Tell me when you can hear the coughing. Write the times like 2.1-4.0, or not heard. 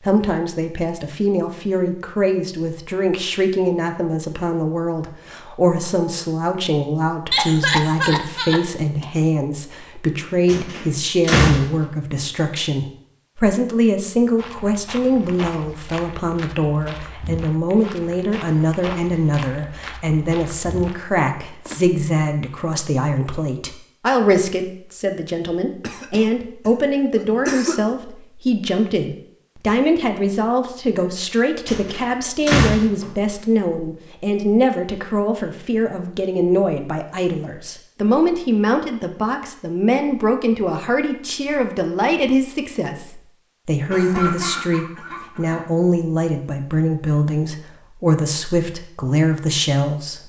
7.3-9.1, 25.8-27.8, 43.9-45.7.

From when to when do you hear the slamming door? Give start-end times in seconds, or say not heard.
10.4-11.7, 31.6-33.1.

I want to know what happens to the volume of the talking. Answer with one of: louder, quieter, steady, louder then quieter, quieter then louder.
steady.